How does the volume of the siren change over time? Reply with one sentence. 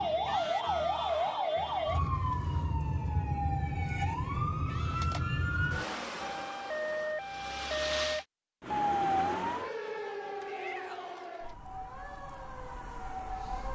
The volume of the siren goes down.